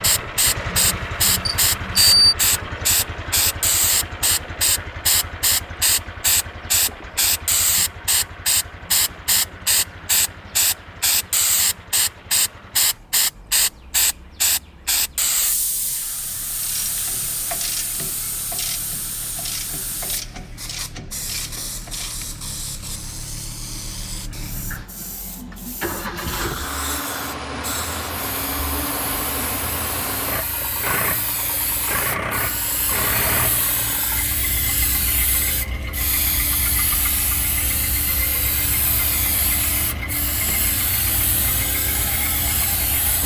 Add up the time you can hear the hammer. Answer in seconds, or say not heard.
not heard.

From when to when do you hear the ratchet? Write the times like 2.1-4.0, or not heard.
16.6-22.4.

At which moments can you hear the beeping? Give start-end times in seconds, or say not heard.
0.8-2.4.